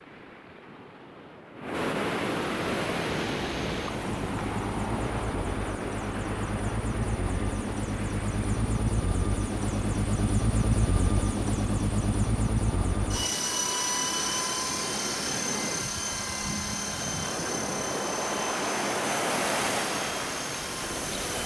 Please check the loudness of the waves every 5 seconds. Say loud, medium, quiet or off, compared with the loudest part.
loud, medium, medium, loud, loud.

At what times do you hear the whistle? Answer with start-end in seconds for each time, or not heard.
not heard.